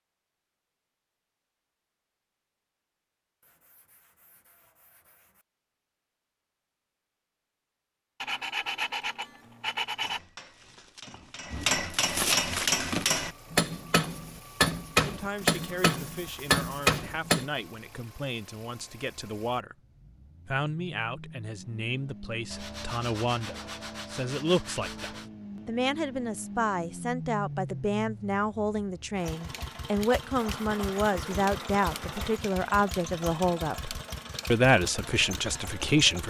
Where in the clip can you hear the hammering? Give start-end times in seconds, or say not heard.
9.9-17.4.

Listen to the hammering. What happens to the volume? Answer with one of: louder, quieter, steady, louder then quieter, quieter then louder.
louder.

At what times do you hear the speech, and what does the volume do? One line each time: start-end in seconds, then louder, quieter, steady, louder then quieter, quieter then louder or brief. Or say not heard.
14.9-19.8 steady
20.4-36.2 louder.